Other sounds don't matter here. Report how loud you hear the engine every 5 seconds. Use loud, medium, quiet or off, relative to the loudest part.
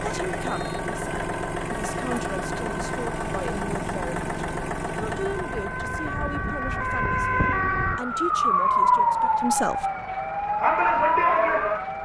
loud, medium, quiet.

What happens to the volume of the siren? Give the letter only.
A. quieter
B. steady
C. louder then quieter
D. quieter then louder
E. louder
E.